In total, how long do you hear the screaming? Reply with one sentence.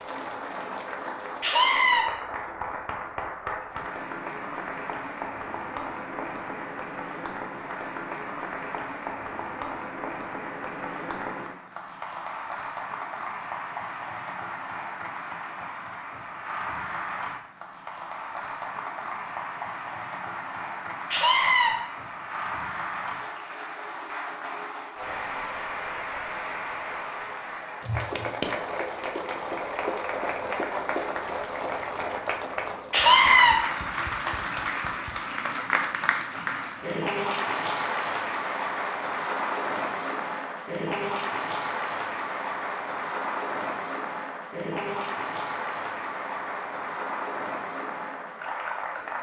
The screaming can be heard for 2 seconds in total.